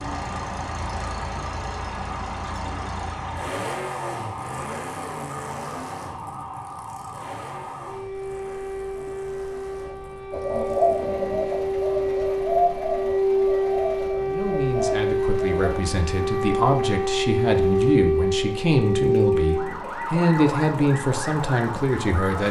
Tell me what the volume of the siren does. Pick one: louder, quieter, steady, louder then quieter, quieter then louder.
louder.